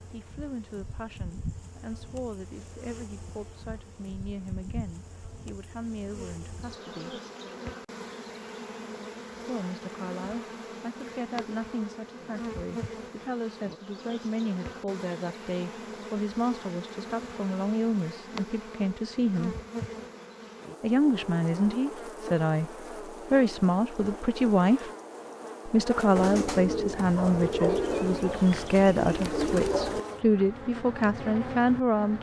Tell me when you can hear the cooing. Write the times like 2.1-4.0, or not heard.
26.1-30.0.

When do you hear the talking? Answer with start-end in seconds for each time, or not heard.
0.1-7.2, 9.4-19.6, 20.8-24.9, 25.6-32.1.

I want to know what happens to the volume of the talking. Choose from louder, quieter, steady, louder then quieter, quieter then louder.
louder.